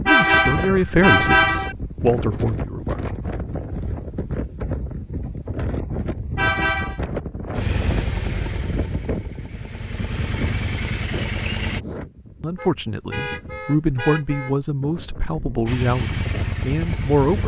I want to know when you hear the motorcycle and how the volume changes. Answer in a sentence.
The motorcycle can be heard from 7.5 to 11.8 s, getting quieter then louder; and briefly from 15.7 to 17.4 s.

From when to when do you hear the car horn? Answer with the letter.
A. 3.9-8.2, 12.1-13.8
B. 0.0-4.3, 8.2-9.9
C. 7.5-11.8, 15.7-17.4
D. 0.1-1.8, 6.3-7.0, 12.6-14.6
D.